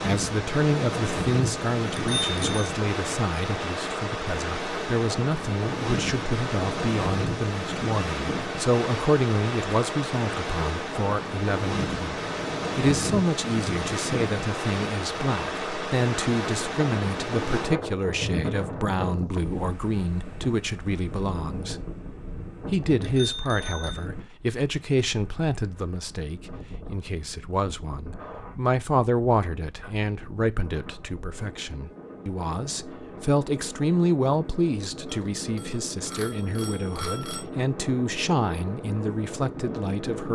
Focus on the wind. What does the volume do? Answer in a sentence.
The loudness of the wind goes down, then up.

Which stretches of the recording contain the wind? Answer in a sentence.
You can hear the wind from 0.0 to 40.2 s.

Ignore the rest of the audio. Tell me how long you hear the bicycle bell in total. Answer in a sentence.
You can hear the bicycle bell for 4 seconds altogether.